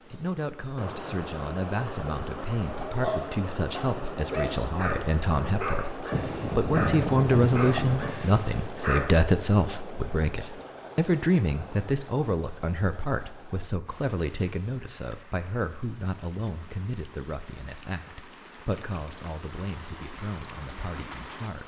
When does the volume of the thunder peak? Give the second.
7 s.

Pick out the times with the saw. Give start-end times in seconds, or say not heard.
not heard.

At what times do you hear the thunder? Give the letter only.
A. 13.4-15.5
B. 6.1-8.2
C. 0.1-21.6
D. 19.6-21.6
B.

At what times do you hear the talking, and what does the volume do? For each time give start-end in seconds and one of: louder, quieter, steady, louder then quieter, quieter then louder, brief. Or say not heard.
0.1-21.6 louder then quieter.